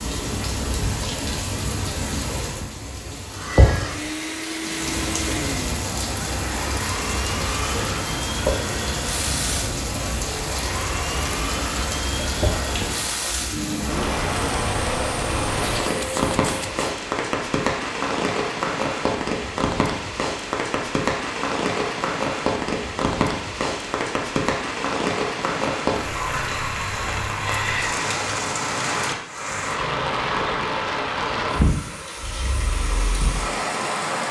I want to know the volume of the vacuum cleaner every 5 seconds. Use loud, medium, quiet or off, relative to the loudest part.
loud, loud, loud, loud, off, off, off.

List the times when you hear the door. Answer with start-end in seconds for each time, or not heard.
not heard.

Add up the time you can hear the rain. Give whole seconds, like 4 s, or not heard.
34 s.